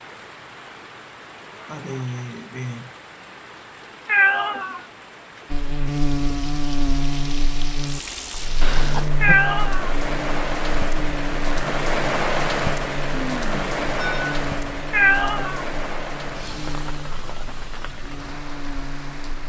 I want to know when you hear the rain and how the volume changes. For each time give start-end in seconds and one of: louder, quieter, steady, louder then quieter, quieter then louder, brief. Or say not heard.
0.0-19.4 louder then quieter.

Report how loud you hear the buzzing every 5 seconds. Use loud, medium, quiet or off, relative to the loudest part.
off, loud, medium, medium.